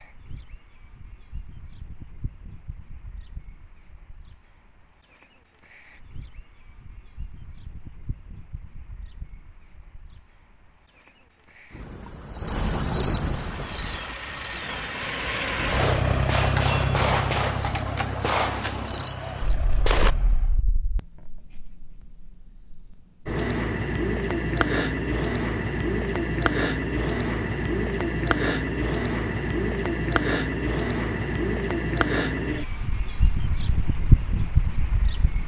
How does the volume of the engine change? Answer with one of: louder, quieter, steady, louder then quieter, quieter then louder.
louder then quieter.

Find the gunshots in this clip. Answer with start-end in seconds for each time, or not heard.
15.7-20.1.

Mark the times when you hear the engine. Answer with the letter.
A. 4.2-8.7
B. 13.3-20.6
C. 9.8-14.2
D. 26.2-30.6
B.